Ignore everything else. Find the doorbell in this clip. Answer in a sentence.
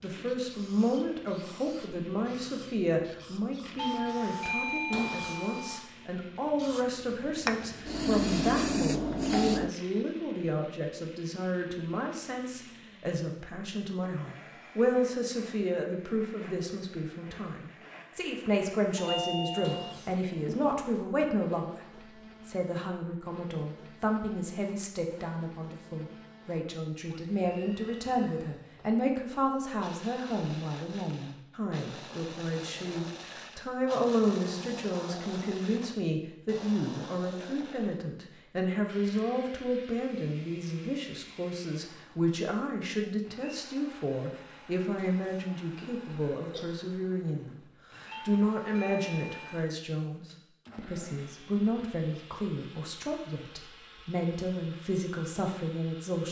You can hear the doorbell from 3.8 to 5.8 s, from 18.9 to 19.9 s and from 48.1 to 49.6 s.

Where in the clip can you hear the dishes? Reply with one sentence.
You can't hear the dishes here.